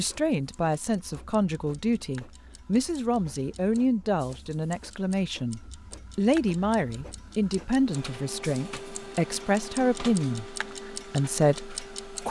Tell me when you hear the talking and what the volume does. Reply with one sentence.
You can hear the talking from 0.0 to 12.2 s, at a steady volume.